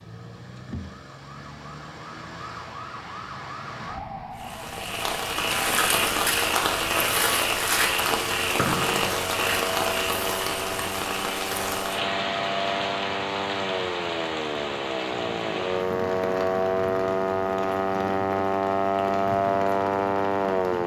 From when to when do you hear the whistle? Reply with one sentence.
You can hear the whistle from 8.6 to 9.2 s.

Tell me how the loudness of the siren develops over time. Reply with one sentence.
The loudness of the siren goes up.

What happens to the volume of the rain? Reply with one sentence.
The volume of the rain goes down.